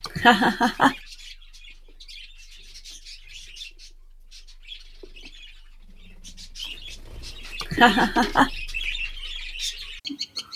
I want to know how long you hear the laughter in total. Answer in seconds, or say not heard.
2 s.